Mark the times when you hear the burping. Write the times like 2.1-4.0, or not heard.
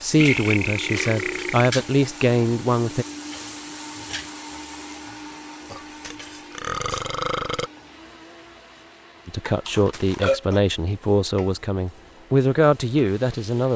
0.1-1.7, 5.7-7.7, 9.7-10.6.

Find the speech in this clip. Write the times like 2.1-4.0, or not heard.
0.0-3.0, 9.2-13.7.